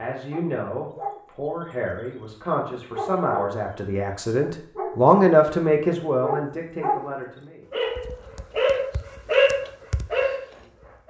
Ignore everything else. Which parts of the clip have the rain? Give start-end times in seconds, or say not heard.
not heard.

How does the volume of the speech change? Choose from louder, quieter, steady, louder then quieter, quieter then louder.
louder then quieter.